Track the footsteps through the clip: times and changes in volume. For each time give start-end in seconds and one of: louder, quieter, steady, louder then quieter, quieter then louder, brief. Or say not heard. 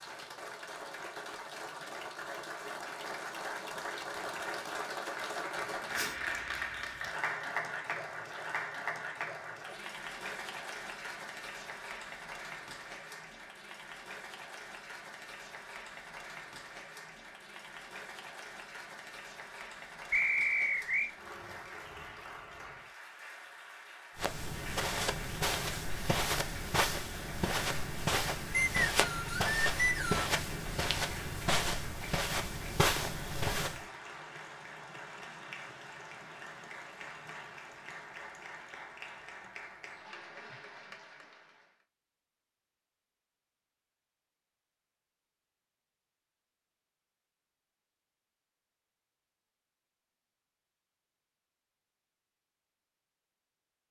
24.1-33.9 steady.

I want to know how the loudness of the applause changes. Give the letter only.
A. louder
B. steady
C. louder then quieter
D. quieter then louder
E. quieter
E.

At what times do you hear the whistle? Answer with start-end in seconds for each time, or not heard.
20.1-21.1, 28.5-30.3.